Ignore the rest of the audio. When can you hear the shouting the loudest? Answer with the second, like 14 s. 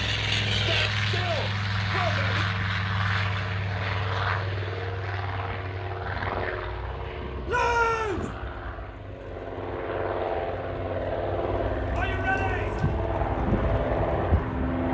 8 s.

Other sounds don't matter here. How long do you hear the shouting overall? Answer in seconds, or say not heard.
4 s.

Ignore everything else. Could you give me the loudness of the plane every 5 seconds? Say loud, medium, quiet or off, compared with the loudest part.
loud, medium, loud.